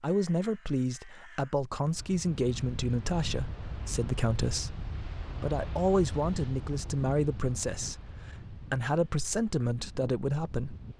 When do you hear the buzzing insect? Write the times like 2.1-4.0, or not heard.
not heard.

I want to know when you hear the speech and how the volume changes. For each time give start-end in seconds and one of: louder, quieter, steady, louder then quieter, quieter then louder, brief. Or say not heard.
0.0-10.8 steady.